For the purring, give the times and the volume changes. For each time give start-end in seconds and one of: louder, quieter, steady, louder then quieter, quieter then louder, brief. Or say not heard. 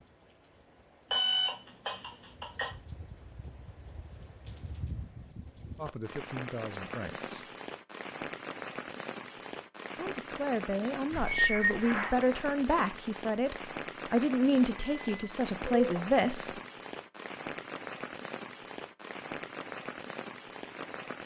not heard.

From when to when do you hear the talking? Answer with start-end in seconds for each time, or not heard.
5.8-7.5, 9.9-16.6.